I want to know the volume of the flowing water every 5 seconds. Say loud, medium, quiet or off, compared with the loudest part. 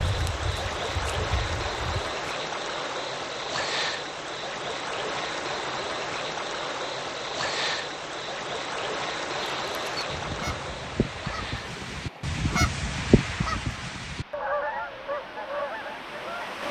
loud, loud, medium, medium.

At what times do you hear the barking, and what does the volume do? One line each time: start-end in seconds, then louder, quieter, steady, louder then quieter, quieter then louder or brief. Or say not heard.
not heard.